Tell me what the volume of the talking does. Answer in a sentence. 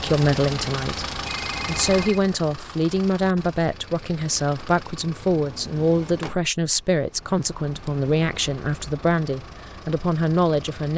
The volume of the talking stays about the same.